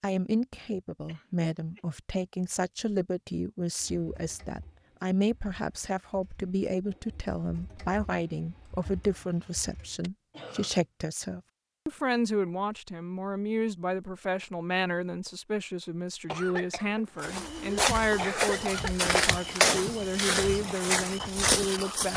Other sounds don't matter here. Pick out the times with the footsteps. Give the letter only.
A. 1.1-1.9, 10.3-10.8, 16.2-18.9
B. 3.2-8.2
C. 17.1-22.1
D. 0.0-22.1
C.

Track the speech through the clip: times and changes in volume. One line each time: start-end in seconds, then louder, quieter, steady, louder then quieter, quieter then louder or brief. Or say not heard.
0.0-22.1 steady.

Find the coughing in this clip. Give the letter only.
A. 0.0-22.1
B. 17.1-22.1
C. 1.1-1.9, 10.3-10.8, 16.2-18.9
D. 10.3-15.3
C.